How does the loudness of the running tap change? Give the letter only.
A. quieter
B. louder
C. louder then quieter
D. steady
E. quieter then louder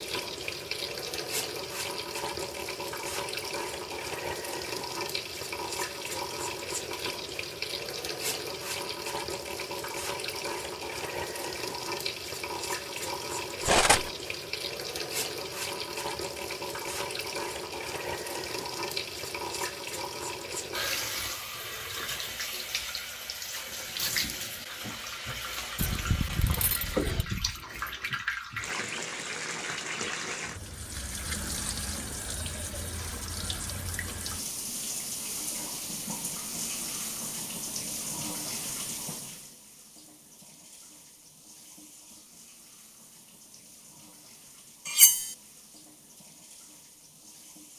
A.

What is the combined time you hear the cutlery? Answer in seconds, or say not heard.
3 s.